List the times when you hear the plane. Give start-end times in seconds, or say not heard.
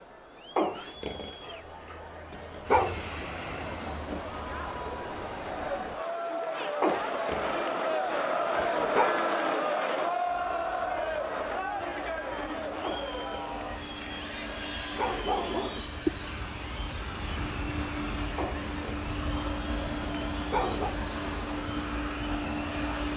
2.6-6.0, 10.2-23.1.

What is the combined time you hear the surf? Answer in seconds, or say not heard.
not heard.